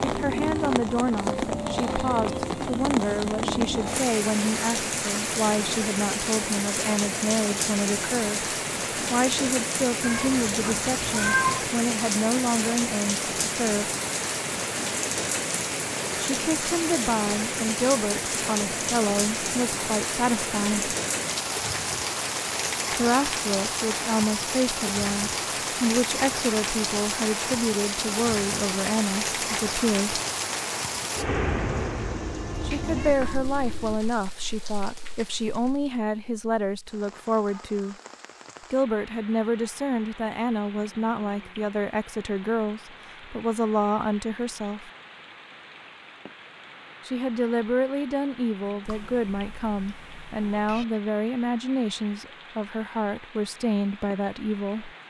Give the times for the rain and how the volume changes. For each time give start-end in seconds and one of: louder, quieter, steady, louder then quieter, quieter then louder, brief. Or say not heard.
0.0-55.0 quieter.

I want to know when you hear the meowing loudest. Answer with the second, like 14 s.
11 s.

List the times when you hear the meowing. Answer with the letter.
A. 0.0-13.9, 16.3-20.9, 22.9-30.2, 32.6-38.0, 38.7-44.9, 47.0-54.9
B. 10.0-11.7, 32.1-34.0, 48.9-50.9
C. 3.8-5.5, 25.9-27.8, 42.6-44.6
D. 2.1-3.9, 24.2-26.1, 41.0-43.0
B.